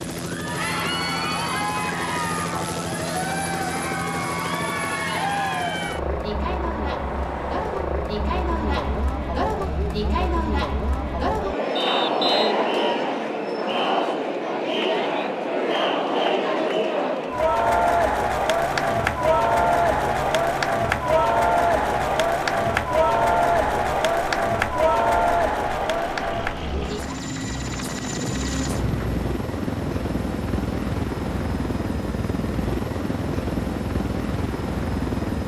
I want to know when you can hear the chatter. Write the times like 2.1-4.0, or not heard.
0.1-27.2.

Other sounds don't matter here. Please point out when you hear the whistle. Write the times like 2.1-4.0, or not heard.
11.8-12.6.